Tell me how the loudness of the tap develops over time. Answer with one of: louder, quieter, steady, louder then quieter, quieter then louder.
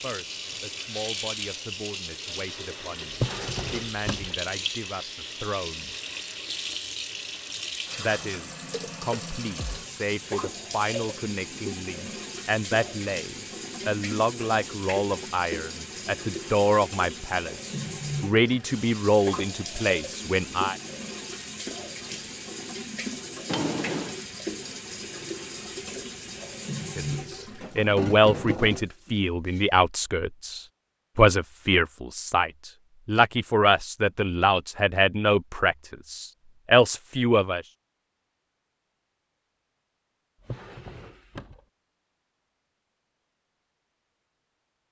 steady.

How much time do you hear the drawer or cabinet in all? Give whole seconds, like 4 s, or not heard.
3 s.